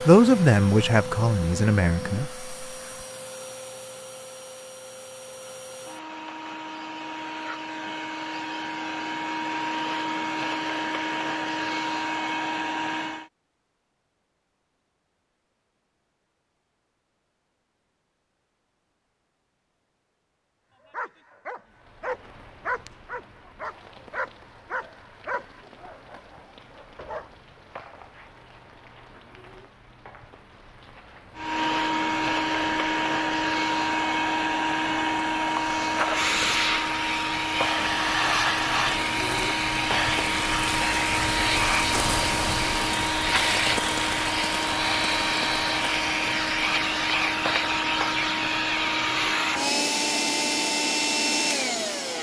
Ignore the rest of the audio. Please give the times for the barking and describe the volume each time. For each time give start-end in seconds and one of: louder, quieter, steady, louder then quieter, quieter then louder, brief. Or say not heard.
20.9-27.3 quieter.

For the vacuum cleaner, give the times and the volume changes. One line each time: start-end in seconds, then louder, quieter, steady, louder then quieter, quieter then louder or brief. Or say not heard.
0.0-13.3 quieter then louder
31.4-52.1 steady.